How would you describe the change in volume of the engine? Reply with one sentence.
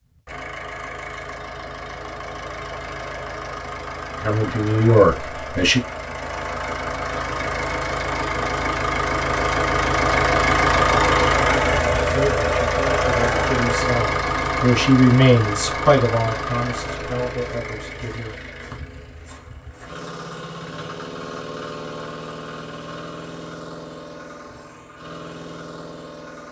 The loudness of the engine goes up, then down.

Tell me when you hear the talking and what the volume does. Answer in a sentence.
The talking can be heard briefly from 4.2 to 5.8 s; and from 12.1 to 18.4 s, getting louder then quieter.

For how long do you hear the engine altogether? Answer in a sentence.
You can hear the engine for 26 seconds altogether.